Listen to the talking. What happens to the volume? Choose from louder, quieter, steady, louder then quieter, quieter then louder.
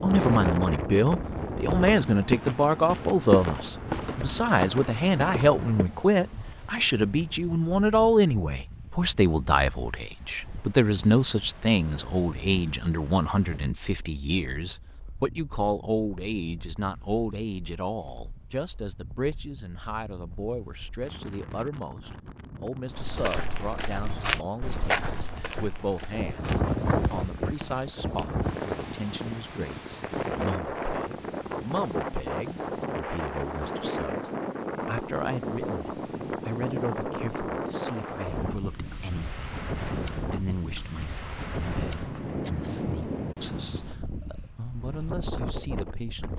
quieter.